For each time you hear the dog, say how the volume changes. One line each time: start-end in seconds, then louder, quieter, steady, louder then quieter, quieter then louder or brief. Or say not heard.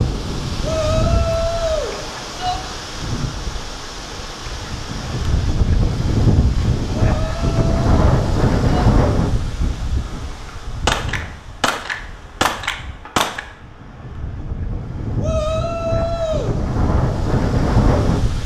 not heard.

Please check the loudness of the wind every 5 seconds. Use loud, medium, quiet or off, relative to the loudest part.
medium, loud, quiet, loud.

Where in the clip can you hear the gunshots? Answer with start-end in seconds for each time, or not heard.
10.8-13.4.